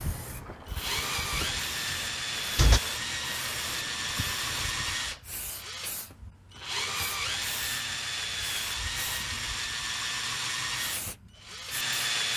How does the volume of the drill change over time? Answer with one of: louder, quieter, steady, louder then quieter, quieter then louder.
steady.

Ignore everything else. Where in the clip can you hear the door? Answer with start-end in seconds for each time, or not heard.
1.3-2.8.